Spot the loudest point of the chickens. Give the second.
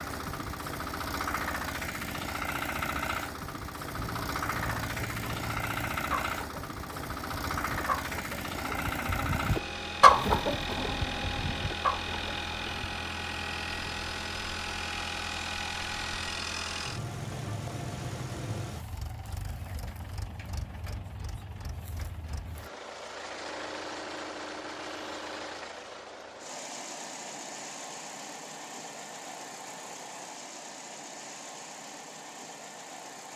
10 s.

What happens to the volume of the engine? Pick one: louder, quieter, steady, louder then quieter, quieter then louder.
quieter.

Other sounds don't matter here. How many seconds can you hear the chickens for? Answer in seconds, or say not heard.
9 s.